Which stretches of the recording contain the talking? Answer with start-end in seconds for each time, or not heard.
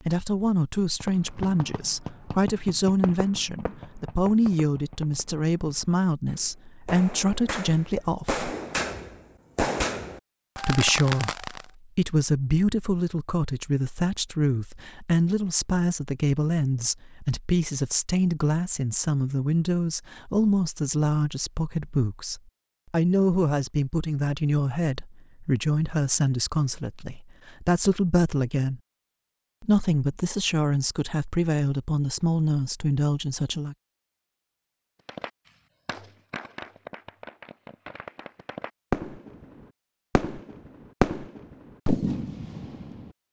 0.0-8.4, 10.6-28.8, 29.6-33.8.